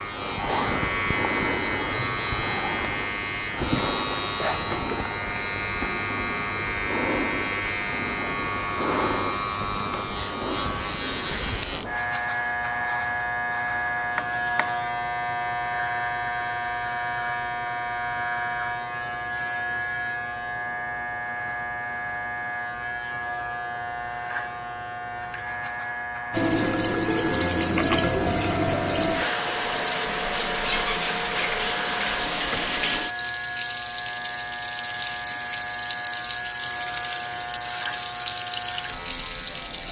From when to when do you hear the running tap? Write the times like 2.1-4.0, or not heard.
26.3-39.8.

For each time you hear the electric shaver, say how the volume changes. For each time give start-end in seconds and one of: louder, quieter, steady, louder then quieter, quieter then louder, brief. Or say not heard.
0.0-39.8 quieter.